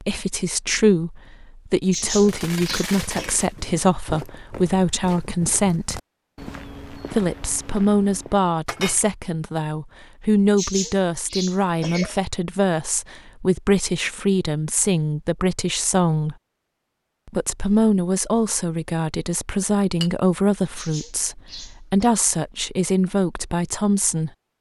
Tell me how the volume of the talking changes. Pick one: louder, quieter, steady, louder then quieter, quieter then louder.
steady.